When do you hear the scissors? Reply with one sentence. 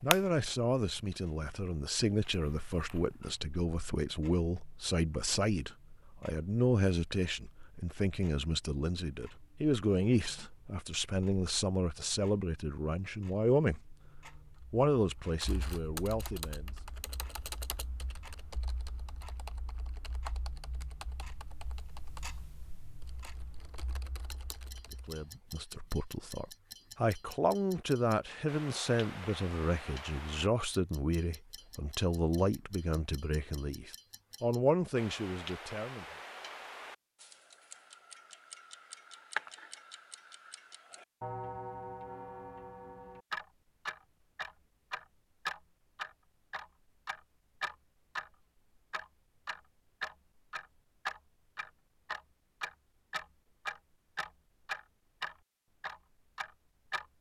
The scissors can't be heard in this clip.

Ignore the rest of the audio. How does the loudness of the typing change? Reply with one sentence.
The loudness of the typing goes down.